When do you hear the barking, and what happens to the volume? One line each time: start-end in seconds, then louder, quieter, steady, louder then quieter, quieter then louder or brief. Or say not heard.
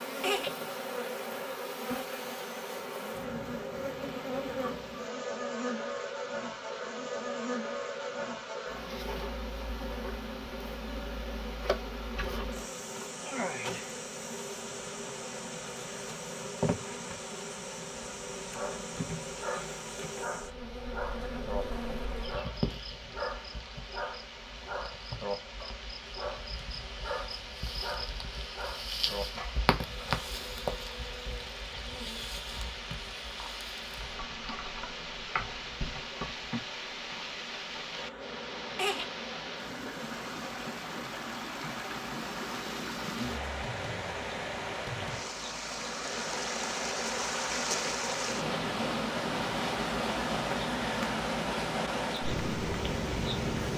18.4-30.4 steady.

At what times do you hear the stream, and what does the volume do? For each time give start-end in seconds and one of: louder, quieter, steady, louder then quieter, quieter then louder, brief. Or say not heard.
0.2-53.7 louder.